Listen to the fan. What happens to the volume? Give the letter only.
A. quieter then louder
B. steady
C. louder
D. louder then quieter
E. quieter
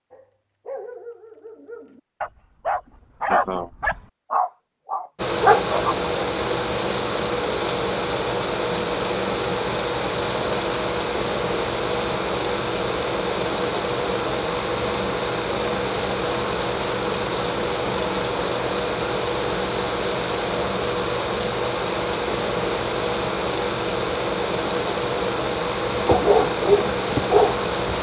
B.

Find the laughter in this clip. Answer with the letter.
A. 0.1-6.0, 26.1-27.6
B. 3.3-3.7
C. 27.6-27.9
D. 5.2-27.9
B.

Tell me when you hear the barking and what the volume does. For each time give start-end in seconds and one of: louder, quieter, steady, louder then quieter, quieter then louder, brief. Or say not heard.
0.1-6.0 louder
26.1-27.6 brief.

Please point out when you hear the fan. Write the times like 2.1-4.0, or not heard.
5.2-27.9.